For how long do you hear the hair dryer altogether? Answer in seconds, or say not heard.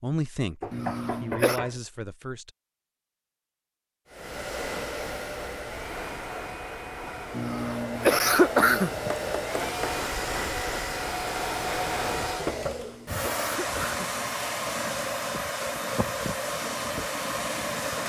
14 s.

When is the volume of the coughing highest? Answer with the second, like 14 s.
9 s.